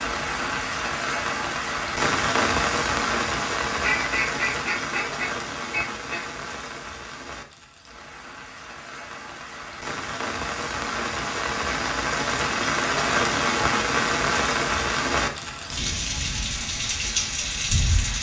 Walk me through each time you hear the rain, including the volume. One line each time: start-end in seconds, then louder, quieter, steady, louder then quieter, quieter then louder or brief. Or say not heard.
0.0-18.1 quieter then louder.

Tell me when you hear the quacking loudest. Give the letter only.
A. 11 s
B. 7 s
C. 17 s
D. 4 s
D.